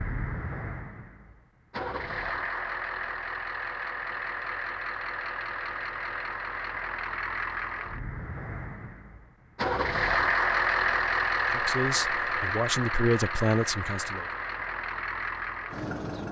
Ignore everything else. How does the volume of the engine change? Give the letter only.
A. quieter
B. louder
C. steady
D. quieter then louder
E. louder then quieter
E.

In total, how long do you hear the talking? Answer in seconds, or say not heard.
3 s.